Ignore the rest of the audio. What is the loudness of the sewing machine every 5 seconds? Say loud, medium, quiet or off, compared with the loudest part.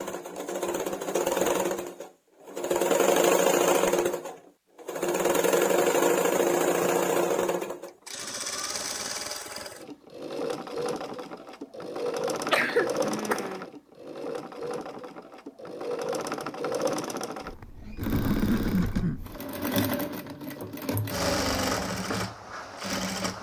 loud, loud, medium, medium, medium.